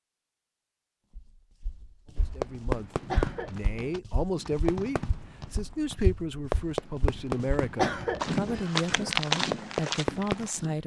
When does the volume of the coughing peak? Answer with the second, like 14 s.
8 s.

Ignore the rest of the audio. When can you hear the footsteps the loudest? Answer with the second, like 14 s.
9 s.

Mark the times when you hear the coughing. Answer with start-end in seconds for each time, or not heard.
3.1-3.9, 7.8-8.6.